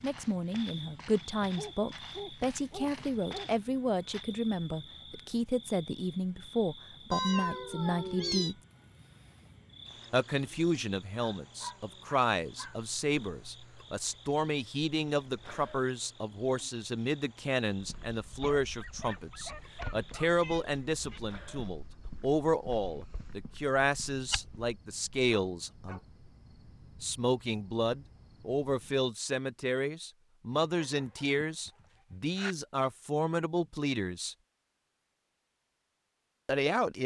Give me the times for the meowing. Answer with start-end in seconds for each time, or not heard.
7.1-8.6, 20.4-21.2.